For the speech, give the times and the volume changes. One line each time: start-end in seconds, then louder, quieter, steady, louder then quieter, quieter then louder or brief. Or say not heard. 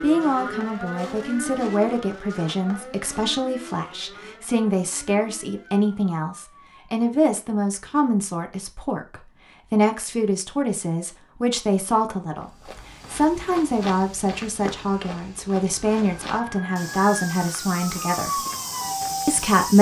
0.0-18.4 steady
19.2-19.7 brief.